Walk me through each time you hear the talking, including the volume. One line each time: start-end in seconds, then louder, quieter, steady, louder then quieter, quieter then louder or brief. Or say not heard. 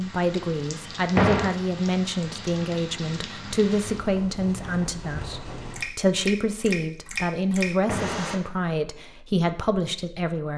0.0-10.5 steady.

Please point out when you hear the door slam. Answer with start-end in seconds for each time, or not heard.
1.1-1.6, 7.8-8.3.